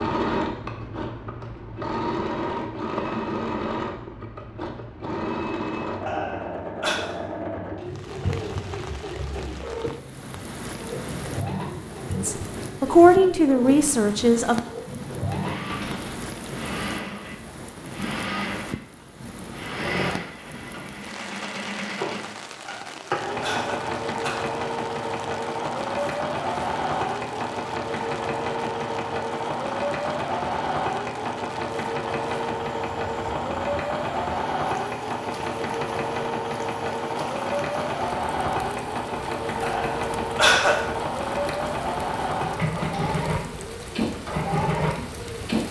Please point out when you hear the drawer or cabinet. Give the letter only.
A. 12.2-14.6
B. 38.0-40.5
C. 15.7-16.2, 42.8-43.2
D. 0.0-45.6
C.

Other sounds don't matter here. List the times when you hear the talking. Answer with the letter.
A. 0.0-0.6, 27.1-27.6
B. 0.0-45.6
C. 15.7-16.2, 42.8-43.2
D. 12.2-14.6
D.